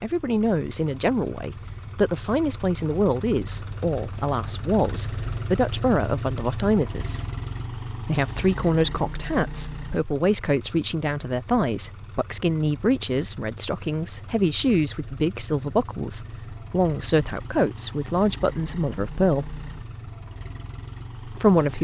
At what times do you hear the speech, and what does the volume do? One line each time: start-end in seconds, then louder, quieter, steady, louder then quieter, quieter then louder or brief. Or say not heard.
0.0-7.2 steady
8.1-19.6 steady
21.2-21.7 brief.